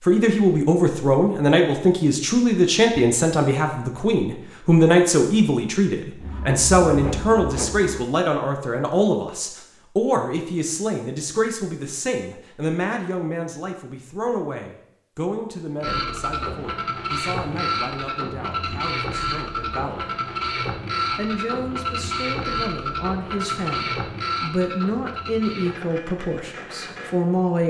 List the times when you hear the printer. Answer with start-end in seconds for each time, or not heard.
6.2-8.0, 15.8-27.6.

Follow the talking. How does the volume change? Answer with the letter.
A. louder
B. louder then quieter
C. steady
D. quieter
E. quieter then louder
E.